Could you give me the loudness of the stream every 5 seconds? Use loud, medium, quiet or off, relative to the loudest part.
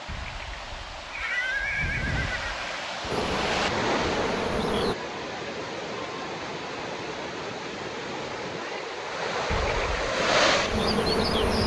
medium, medium, loud.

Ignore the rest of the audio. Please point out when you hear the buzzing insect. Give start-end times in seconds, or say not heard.
3.1-5.0, 10.2-11.6.